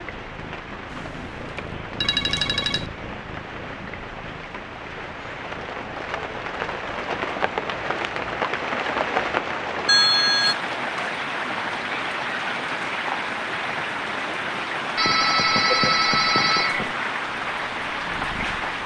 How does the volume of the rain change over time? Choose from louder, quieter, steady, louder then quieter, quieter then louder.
louder.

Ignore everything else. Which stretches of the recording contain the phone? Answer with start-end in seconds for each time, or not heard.
0.9-2.9, 9.8-10.6, 14.9-16.9.